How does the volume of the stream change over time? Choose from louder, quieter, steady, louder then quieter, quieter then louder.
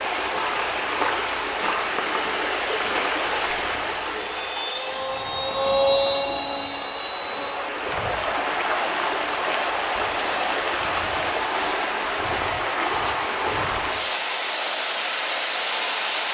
quieter then louder.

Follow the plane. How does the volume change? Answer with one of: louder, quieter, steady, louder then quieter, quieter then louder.
louder then quieter.